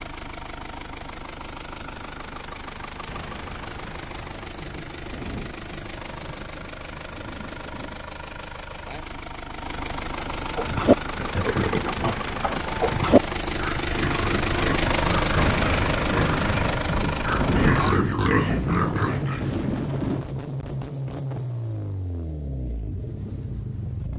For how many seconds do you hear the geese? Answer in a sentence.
The geese can't be heard in this clip.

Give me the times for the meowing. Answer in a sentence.
The meowing can't be heard in this clip.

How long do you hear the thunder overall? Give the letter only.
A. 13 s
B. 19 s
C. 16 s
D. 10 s
D.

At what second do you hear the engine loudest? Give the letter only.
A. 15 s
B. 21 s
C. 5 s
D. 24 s
A.